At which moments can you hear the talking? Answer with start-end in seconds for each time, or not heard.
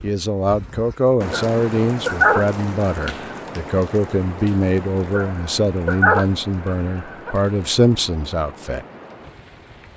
0.0-8.8.